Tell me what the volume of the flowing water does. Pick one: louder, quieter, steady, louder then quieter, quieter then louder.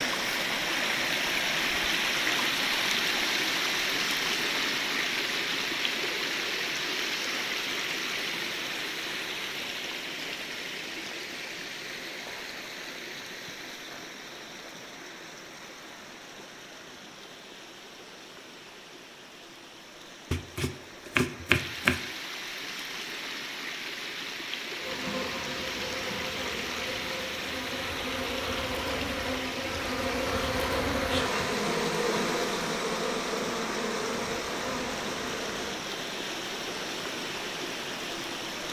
quieter then louder.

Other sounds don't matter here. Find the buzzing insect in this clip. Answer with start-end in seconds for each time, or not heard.
24.8-35.8.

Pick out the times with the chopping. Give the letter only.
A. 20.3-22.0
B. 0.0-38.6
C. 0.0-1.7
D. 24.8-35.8
A.